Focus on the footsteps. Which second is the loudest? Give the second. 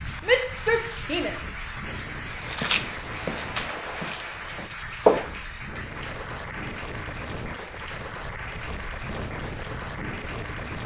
5 s.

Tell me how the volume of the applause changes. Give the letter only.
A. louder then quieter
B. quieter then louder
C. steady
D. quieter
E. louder
C.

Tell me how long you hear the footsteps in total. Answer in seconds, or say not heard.
3 s.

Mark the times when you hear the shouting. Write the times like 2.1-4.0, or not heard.
0.2-1.4.